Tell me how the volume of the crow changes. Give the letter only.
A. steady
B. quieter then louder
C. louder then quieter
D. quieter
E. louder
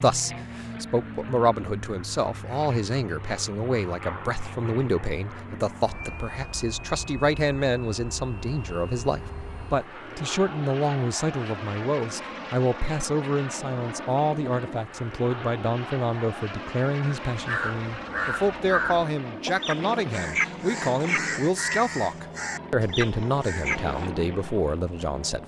A.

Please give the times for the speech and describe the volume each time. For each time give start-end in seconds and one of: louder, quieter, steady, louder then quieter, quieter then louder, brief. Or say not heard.
0.0-25.4 steady.